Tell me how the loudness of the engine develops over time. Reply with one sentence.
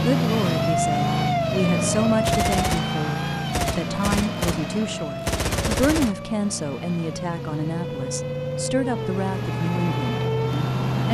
The volume of the engine goes down, then up.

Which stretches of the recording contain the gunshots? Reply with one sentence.
The gunshots can be heard from 2.2 to 6.2 s.